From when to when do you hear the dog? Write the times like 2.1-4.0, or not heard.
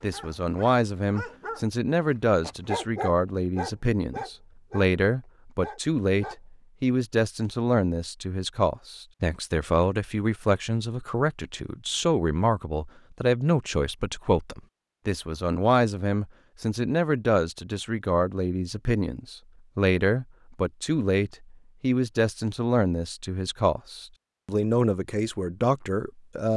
0.0-4.9, 5.6-6.4.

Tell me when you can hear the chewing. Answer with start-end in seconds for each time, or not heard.
not heard.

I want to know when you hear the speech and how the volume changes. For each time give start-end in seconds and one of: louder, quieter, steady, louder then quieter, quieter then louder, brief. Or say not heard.
0.0-26.5 steady.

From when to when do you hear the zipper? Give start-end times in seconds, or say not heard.
not heard.